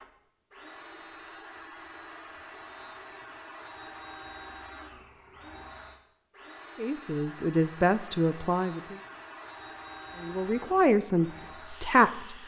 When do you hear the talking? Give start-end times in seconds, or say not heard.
6.8-9.0, 10.2-12.4.